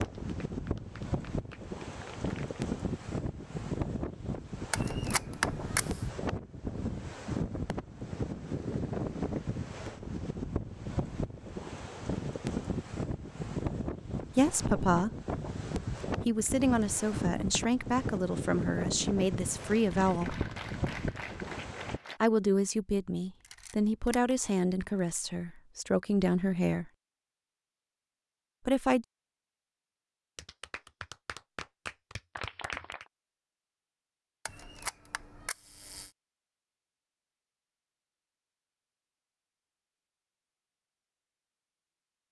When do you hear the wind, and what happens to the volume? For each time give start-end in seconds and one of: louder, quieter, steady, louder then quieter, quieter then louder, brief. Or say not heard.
0.0-22.0 steady.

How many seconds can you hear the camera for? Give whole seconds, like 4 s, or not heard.
4 s.